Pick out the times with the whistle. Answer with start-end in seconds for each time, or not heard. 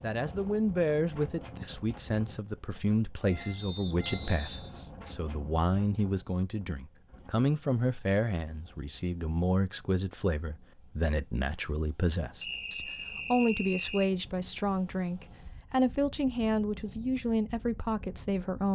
3.5-4.8, 12.4-14.1.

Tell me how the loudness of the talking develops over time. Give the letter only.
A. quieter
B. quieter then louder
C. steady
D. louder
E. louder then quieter
C.